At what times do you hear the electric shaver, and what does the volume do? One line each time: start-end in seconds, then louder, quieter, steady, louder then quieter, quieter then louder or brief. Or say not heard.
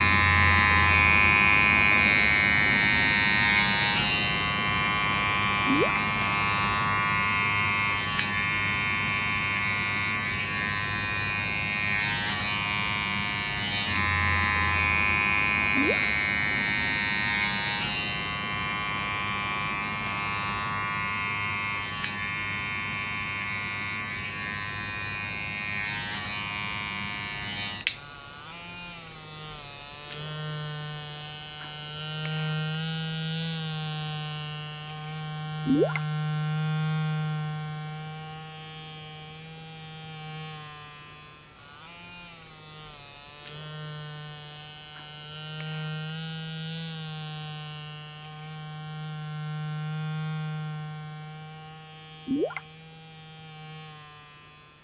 0.0-54.7 quieter.